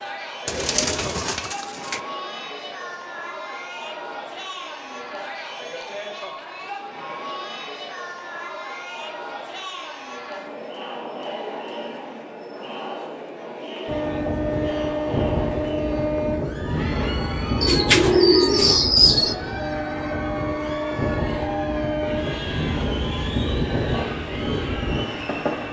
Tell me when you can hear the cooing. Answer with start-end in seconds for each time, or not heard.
0.5-2.0, 17.6-19.4.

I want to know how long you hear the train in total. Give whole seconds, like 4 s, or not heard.
12 s.